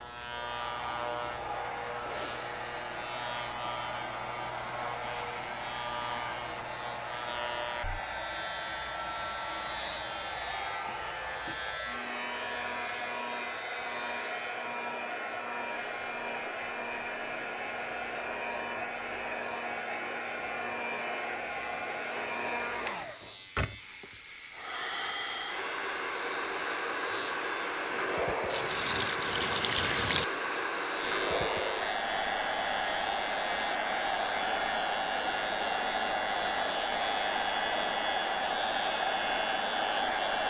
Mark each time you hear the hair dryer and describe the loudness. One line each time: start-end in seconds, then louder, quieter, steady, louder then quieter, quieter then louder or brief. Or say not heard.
0.0-40.4 louder.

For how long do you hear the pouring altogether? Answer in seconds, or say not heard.
2 s.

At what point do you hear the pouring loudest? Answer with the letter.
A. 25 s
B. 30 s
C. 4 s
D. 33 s
B.